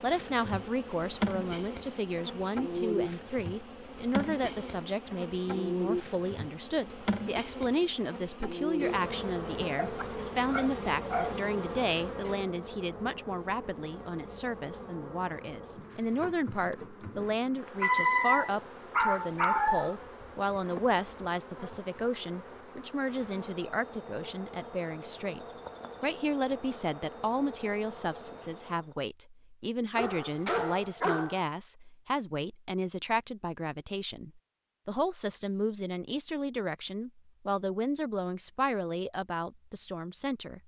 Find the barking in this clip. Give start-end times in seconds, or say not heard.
9.8-11.3, 17.8-19.9, 29.9-31.4.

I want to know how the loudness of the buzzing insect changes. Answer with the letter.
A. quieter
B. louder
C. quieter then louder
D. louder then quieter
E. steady
A.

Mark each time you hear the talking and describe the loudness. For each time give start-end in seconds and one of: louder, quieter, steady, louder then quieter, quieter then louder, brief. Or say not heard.
0.0-40.6 steady.